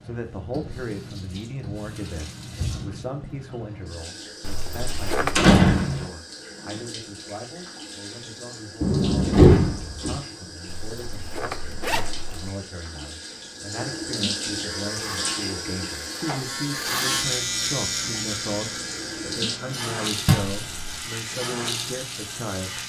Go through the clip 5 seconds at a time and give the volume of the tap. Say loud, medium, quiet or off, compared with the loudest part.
medium, medium, loud, loud, loud.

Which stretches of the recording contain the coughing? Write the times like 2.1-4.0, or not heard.
not heard.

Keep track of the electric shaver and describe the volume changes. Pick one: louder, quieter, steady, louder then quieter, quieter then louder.
louder then quieter.